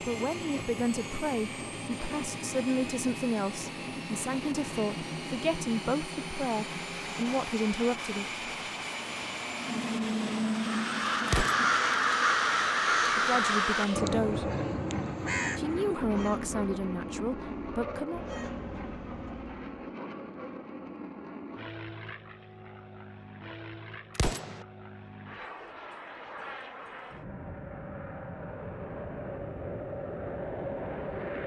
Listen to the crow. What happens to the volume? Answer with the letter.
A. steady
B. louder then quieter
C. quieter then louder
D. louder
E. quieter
E.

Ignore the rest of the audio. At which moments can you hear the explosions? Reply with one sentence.
The explosions can be heard from 11.2 to 11.8 s and from 24.1 to 24.6 s.